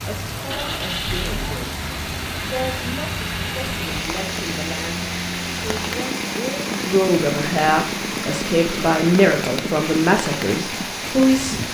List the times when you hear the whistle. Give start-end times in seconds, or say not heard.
not heard.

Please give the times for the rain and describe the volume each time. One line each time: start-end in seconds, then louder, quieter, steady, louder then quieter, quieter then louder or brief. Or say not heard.
0.0-11.6 steady.